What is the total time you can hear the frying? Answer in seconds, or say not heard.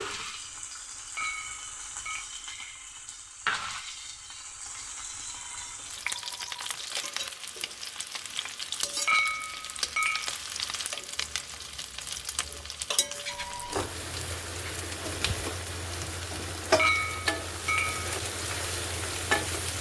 20 s.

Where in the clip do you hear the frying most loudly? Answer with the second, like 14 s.
17 s.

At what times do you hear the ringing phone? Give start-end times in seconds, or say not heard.
5.2-6.6, 13.2-14.0.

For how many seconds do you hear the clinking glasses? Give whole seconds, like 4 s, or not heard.
4 s.